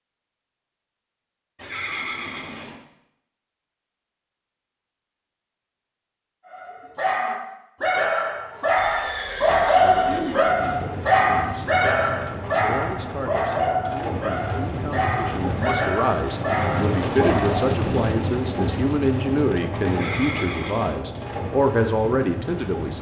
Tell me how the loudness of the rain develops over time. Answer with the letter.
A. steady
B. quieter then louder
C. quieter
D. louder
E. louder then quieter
E.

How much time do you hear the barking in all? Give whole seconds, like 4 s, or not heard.
11 s.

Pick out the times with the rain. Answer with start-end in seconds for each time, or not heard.
10.5-22.9.